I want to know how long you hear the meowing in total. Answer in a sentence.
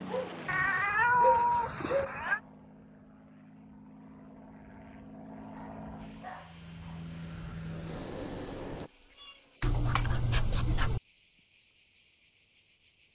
The meowing can be heard for 3 seconds in total.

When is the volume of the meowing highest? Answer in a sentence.
The loudest moment of the meowing is at 1 second.